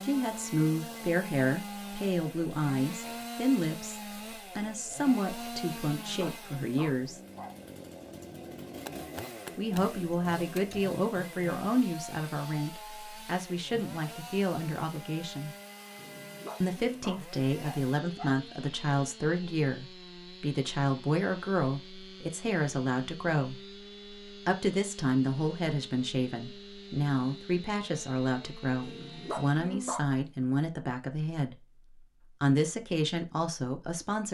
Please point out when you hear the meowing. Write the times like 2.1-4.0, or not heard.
not heard.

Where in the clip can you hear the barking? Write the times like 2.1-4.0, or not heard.
5.8-7.5, 15.9-18.4, 28.8-30.1.